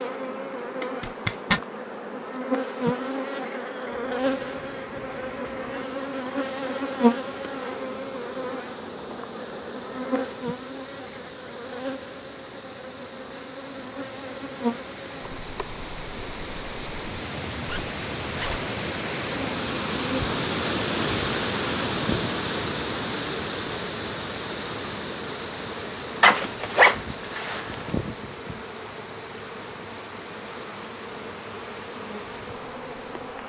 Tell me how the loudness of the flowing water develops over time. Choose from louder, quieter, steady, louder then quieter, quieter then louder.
louder then quieter.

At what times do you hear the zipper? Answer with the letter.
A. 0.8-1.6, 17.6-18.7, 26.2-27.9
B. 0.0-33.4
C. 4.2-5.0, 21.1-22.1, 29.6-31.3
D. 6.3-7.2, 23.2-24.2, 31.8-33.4
A.